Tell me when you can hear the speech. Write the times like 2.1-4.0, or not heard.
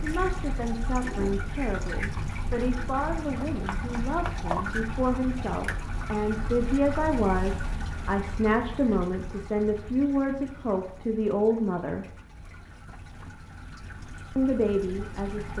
0.0-12.1, 14.3-15.5.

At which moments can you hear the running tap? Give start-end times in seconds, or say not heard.
0.0-15.5.